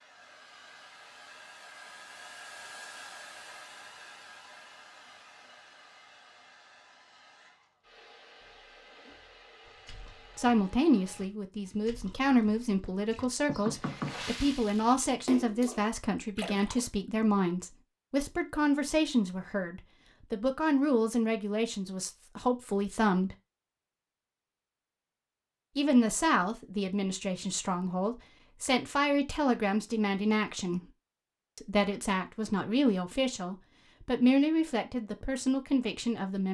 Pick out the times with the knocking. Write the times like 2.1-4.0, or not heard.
13.4-14.2.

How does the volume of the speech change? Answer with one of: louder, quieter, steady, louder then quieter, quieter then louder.
steady.